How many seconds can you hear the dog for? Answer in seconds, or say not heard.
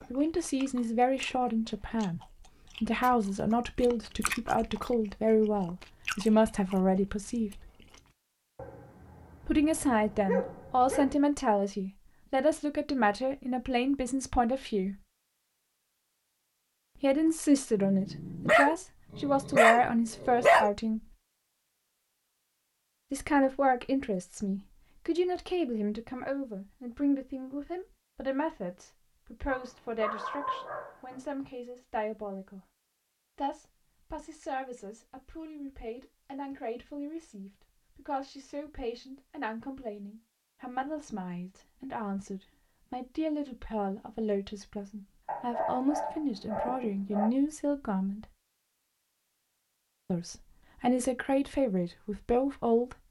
9 s.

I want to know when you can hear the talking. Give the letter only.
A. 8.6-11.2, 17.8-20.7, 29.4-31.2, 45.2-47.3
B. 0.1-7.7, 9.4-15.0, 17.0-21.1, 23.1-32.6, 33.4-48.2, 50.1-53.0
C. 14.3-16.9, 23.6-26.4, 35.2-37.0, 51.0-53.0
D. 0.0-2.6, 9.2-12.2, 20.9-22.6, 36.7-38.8
B.